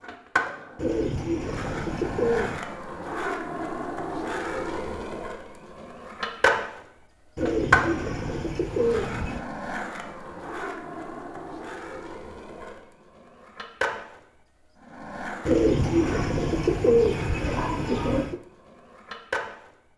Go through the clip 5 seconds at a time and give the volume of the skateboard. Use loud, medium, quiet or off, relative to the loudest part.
loud, loud, medium, medium.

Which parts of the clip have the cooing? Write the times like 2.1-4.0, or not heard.
0.8-2.6, 7.3-9.4, 15.4-18.4.